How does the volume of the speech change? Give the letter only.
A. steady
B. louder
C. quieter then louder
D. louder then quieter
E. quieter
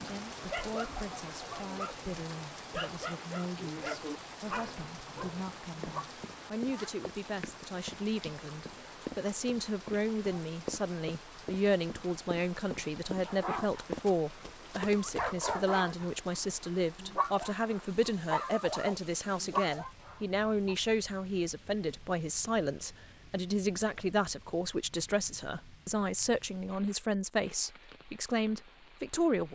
B.